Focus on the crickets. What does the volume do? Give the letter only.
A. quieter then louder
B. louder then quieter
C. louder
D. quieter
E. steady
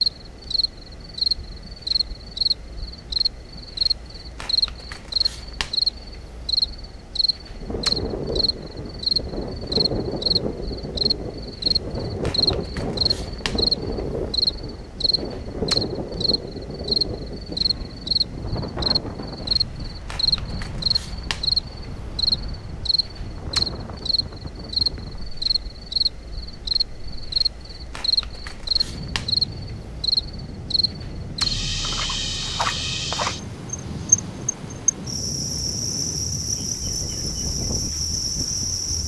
E.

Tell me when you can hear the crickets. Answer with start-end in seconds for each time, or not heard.
0.0-39.0.